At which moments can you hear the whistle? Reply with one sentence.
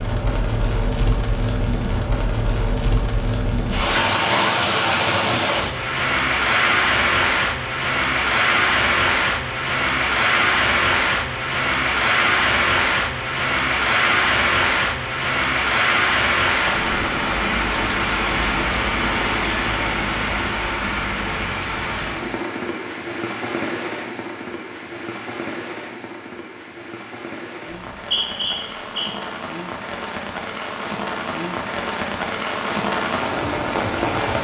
You can hear the whistle from 27.8 to 29.1 s.